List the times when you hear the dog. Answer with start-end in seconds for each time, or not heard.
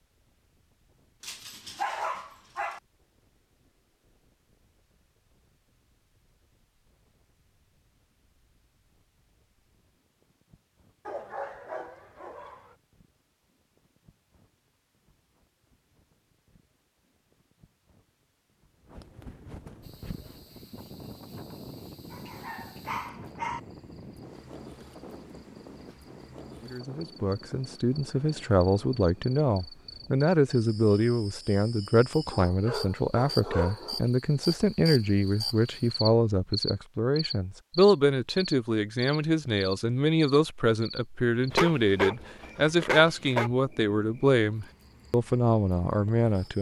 1.2-2.8, 11.1-12.8, 22.1-23.6, 32.3-34.1, 41.5-43.5.